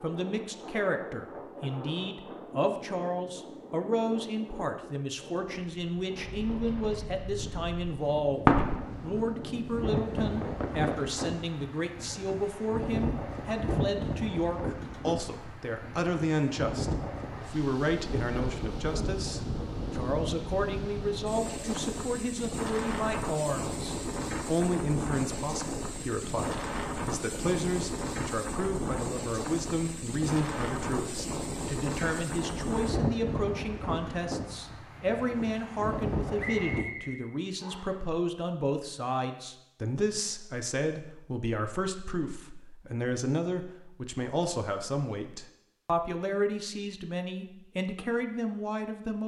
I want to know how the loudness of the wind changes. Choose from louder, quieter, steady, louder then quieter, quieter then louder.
louder.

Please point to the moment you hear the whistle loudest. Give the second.
37 s.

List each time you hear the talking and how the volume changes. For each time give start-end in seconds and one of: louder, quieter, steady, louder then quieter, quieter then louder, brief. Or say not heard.
0.0-49.2 steady.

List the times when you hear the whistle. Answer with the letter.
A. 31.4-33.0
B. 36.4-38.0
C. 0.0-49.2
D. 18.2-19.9
B.